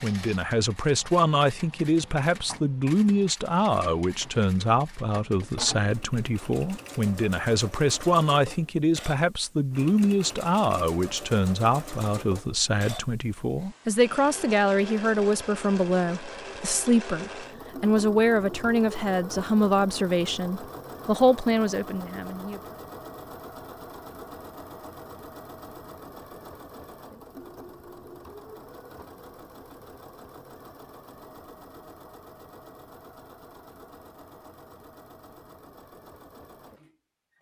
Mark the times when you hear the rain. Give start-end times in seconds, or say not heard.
not heard.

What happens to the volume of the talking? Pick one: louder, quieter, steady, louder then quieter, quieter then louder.
steady.